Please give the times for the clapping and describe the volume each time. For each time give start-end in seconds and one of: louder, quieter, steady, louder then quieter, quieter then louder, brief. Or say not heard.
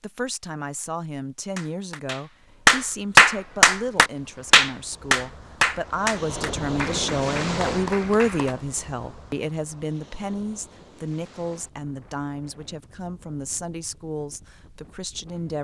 1.6-8.6 quieter.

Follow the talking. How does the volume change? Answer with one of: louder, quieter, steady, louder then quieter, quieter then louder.
louder then quieter.